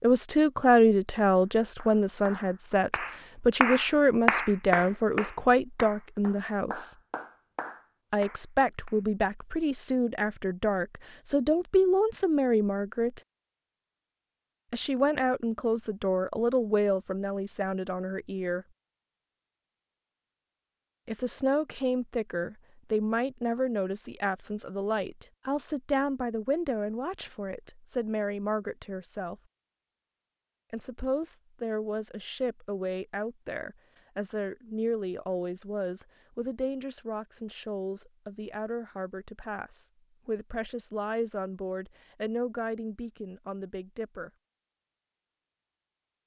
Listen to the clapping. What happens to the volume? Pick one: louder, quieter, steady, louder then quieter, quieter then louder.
louder then quieter.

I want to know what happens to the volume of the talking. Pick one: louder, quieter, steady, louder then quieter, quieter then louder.
quieter.